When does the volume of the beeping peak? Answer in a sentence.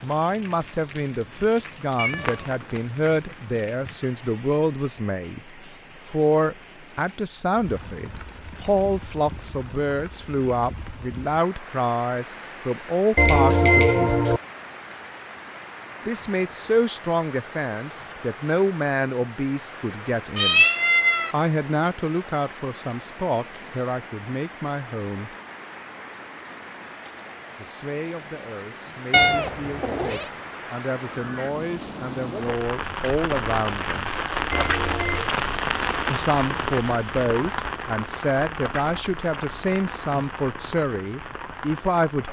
The volume of the beeping peaks at 14 seconds.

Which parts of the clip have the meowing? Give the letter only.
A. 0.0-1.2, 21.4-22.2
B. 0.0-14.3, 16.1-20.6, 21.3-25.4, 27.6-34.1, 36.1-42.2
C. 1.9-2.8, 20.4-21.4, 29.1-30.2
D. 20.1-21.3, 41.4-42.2
C.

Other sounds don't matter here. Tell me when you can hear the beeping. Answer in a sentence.
You can hear the beeping from 13.2 to 14.4 s and from 34.5 to 35.4 s.